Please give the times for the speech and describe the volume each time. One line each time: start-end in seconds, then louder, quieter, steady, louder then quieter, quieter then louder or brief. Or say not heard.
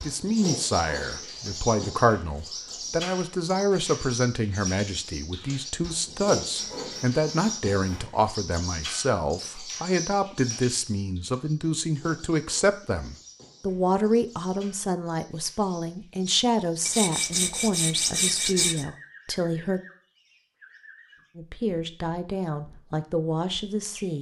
0.0-19.8 steady
21.4-24.1 brief.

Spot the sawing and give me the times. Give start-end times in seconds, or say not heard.
6.5-8.1, 16.9-18.9.